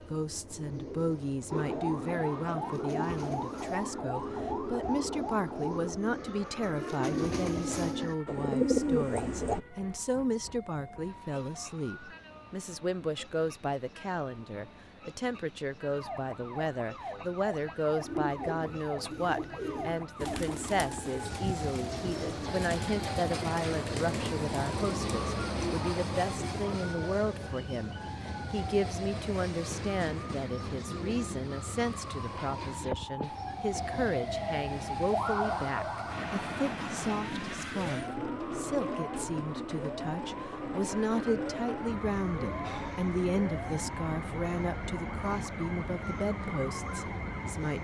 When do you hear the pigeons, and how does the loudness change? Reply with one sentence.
You can hear the pigeons from 0.0 to 9.6 s, getting louder; and from 17.9 to 25.8 s, at a steady volume.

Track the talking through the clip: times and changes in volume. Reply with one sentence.
You can hear the talking from 0.1 to 47.8 s, at a steady volume.